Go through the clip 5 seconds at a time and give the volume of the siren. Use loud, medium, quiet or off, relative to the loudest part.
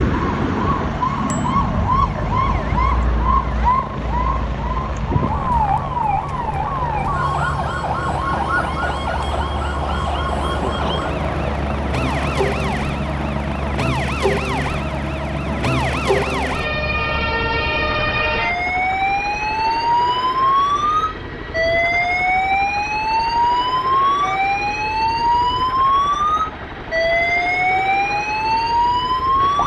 loud, medium, medium, loud, loud, loud.